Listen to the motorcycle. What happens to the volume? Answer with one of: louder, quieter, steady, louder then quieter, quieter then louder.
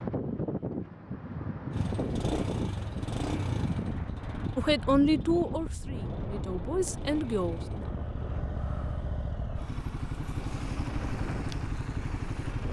quieter then louder.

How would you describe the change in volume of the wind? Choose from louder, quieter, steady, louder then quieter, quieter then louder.
quieter.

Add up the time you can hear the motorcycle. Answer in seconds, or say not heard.
11 s.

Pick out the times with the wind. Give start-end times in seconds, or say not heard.
0.0-12.6.